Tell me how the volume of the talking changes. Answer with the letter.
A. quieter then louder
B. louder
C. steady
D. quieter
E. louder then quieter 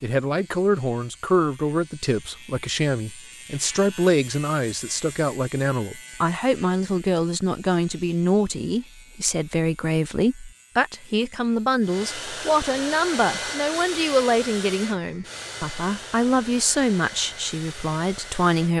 C.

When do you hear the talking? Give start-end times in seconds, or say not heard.
0.0-18.7.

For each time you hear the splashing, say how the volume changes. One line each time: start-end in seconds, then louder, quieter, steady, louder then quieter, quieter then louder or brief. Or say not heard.
not heard.